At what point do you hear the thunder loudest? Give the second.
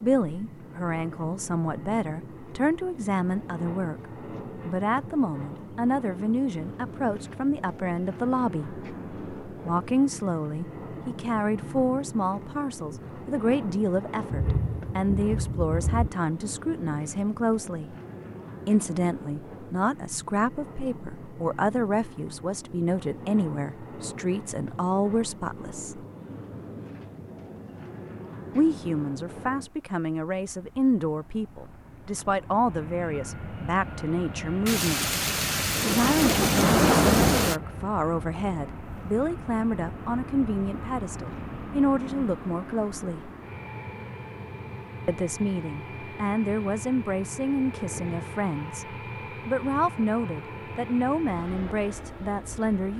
37 s.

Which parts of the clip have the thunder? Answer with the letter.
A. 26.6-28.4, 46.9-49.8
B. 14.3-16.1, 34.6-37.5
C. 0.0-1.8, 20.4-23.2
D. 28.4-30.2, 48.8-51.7
B.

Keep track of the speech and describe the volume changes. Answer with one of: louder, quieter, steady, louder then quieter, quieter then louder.
steady.